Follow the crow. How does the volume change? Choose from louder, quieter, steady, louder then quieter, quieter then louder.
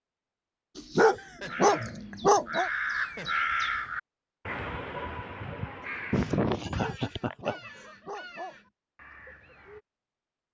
quieter.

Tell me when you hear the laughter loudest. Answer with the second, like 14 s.
6 s.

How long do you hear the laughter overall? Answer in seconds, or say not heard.
4 s.